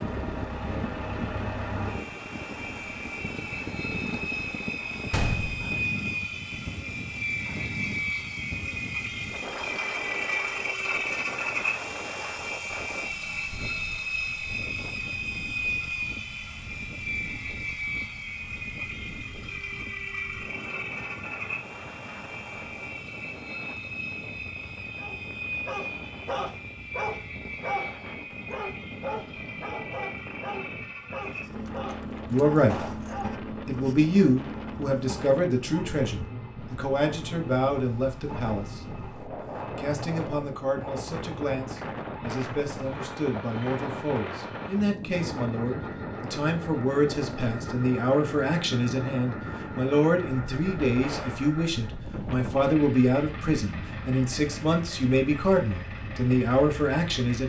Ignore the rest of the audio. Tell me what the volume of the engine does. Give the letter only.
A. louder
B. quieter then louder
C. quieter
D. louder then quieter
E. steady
C.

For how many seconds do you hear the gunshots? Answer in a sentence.
The gunshots can be heard for 3 seconds in total.